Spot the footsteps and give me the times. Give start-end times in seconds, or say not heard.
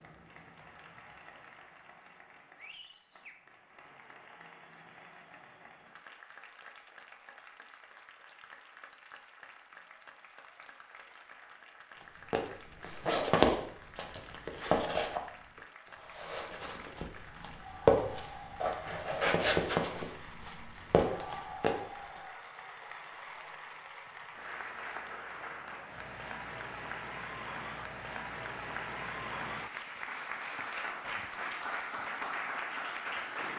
12.3-21.8.